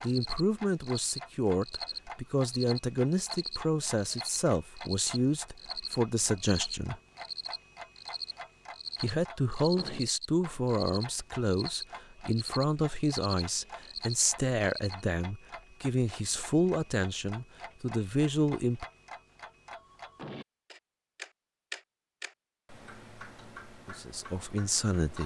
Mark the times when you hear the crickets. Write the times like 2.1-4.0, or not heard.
0.0-15.0.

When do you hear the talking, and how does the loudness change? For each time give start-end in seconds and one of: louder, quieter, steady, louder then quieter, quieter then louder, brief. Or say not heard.
0.0-7.0 steady
9.0-18.9 steady
23.9-25.2 brief.